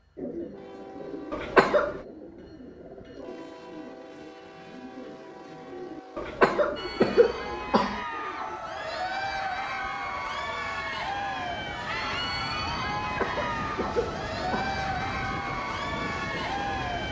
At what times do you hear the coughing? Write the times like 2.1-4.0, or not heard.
1.3-2.0, 6.2-8.1, 13.0-14.8.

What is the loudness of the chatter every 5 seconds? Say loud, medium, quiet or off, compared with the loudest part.
off, loud, loud, loud.